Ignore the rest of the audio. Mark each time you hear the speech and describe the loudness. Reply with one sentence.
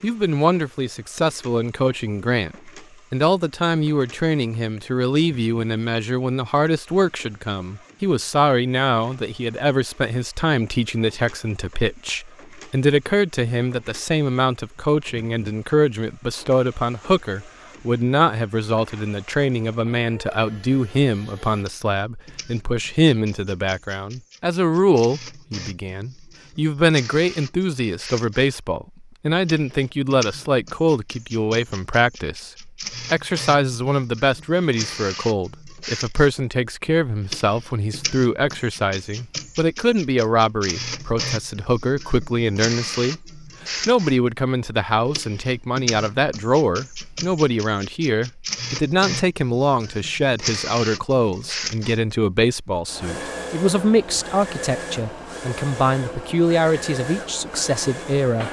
You can hear the speech from 0.0 to 58.4 s, at a steady volume.